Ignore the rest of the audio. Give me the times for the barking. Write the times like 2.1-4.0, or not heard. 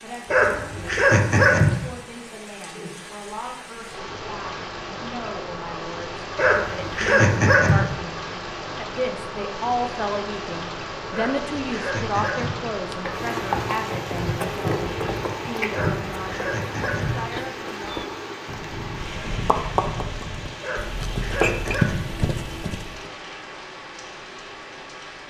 0.2-1.9, 6.3-8.0, 11.1-12.7, 15.7-17.2, 20.6-22.2.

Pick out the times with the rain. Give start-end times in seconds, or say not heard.
0.0-25.2.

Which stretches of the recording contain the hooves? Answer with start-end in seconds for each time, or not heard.
12.7-23.0.